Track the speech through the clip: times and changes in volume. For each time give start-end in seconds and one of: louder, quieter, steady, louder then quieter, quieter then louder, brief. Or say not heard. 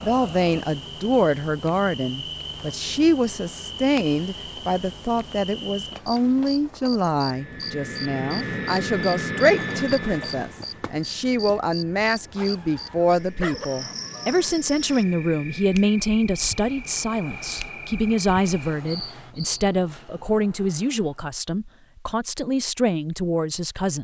0.0-23.9 steady.